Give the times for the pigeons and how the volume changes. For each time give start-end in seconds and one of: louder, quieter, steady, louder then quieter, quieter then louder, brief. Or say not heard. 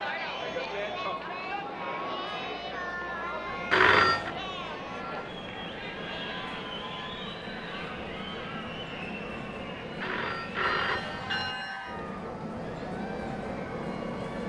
not heard.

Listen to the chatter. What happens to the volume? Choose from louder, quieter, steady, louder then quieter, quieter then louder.
quieter.